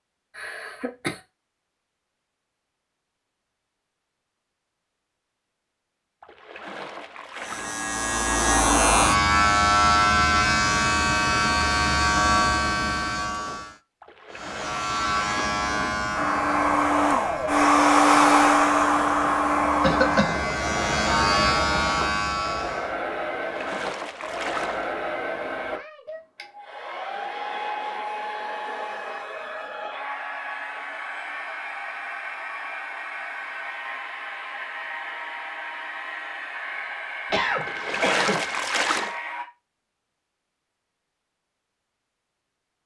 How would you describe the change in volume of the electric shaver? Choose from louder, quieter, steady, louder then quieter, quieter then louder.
quieter then louder.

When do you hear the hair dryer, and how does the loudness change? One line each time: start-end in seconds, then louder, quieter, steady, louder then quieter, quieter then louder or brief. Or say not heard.
16.1-39.5 quieter.